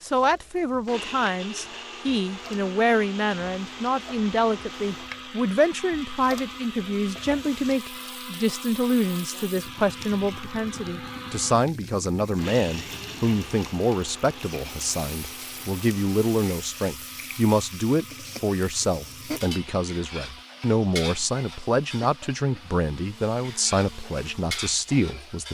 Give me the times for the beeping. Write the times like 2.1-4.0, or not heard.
not heard.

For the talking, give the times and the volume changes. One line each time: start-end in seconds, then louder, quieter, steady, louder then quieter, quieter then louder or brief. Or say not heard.
0.0-25.4 steady.